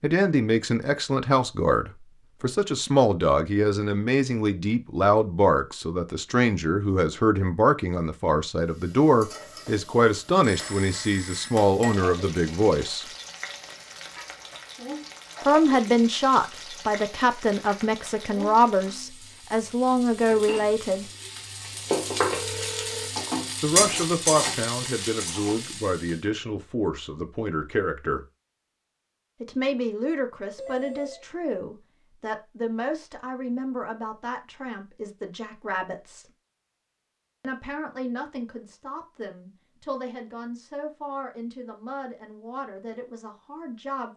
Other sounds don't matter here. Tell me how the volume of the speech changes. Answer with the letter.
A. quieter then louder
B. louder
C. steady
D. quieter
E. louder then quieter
D.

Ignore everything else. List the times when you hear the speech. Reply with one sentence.
The speech can be heard from 0.0 to 13.1 s, from 15.4 to 21.1 s, from 23.6 to 28.2 s, from 29.4 to 36.3 s and from 37.4 to 44.1 s.